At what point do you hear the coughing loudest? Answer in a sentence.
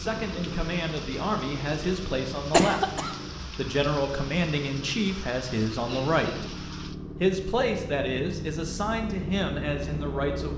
The volume of the coughing peaks at 3 seconds.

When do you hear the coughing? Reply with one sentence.
You can hear the coughing from 2.5 to 3.1 s and from 5.8 to 6.5 s.